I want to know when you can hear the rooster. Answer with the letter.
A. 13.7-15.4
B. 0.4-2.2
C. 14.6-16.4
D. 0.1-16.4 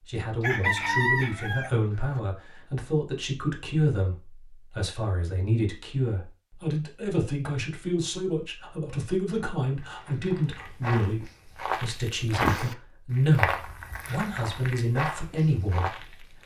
B.